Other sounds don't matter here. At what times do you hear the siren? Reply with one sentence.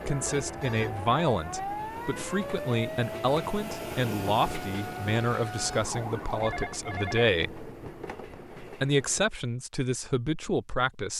The siren can be heard from 0.0 to 6.5 s.